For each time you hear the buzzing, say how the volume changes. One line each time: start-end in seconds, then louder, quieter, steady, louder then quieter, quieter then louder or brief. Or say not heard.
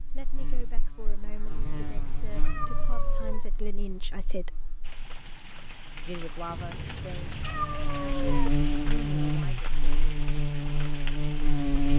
0.0-11.9 quieter then louder.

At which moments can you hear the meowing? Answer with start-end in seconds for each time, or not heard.
1.5-3.5, 6.5-8.5.